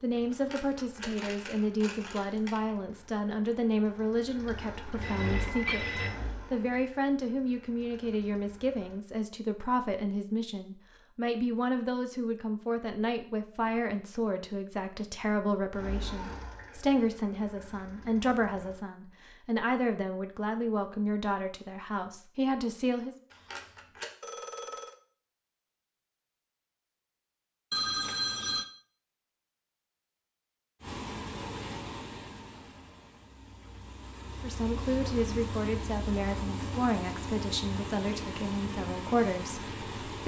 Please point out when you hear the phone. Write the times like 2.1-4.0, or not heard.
4.5-6.2, 24.2-24.9, 27.7-28.6.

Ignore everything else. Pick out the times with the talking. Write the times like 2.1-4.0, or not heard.
0.0-23.1, 34.4-40.2.